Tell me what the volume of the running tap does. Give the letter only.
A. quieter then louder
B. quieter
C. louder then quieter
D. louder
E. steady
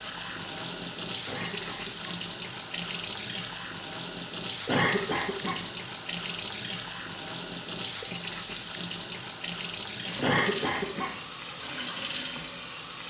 E.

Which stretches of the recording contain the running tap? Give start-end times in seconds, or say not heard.
0.0-13.0.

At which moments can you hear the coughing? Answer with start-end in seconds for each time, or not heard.
1.2-2.2, 4.7-5.7, 10.2-11.2.